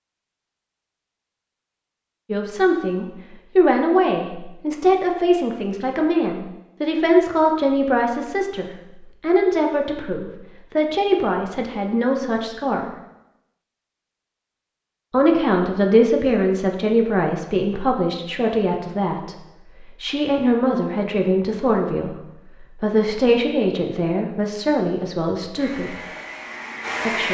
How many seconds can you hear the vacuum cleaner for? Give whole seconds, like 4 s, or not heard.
2 s.